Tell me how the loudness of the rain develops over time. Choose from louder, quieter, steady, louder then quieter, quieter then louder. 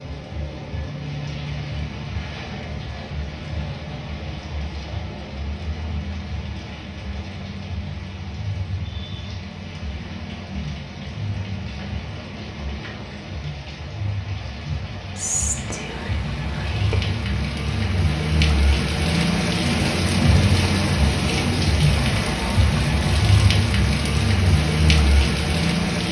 louder.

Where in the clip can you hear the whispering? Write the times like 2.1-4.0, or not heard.
15.2-17.1.